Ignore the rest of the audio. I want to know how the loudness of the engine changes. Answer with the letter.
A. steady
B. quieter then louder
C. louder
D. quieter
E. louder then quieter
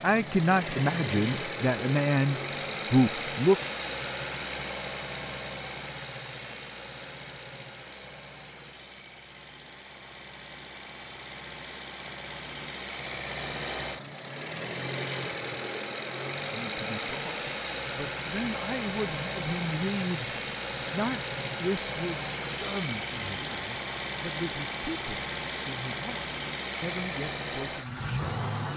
B.